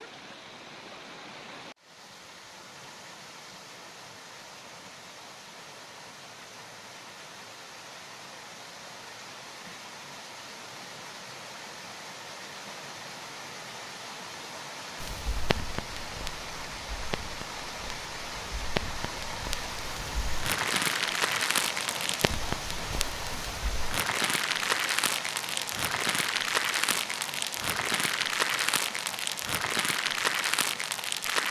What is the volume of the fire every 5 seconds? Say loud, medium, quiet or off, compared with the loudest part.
off, off, off, medium, loud, loud, loud.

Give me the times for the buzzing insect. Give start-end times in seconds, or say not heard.
not heard.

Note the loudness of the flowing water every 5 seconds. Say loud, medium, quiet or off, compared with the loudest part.
medium, medium, medium, loud, loud, loud, medium.